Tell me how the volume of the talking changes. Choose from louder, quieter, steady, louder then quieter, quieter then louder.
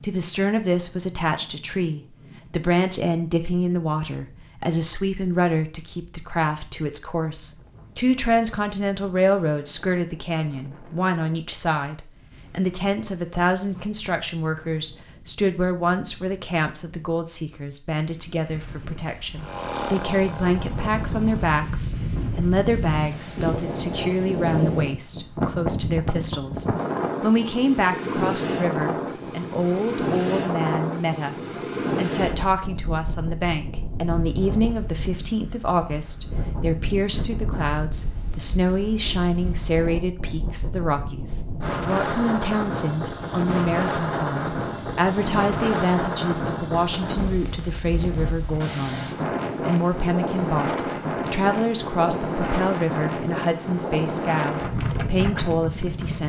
steady.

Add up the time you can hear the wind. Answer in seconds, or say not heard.
56 s.